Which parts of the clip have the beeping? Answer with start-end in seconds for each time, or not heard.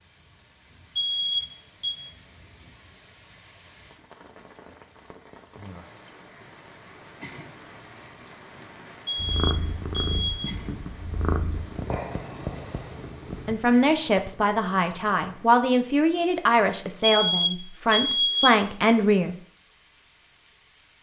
0.9-2.0, 9.1-10.5, 17.0-18.5.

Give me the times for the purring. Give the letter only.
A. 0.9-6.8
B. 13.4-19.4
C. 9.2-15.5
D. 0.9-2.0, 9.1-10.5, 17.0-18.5
C.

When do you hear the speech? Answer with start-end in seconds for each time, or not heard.
13.4-19.4.